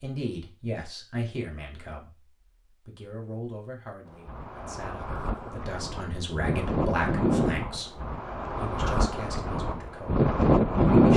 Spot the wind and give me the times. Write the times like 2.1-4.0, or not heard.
4.0-11.1.